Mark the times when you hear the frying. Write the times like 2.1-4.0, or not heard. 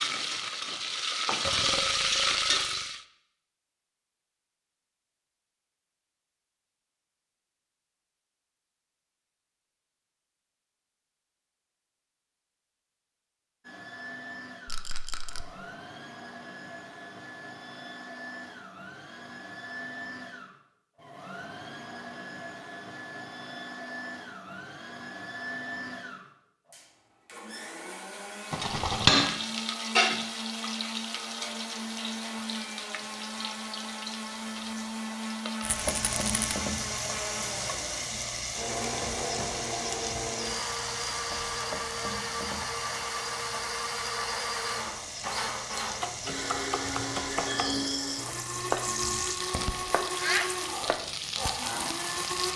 0.0-3.0, 28.4-52.5.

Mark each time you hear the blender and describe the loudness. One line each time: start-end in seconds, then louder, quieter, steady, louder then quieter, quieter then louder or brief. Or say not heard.
13.6-52.5 louder.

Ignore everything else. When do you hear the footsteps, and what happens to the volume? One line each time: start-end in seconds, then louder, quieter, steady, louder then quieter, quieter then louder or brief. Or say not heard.
not heard.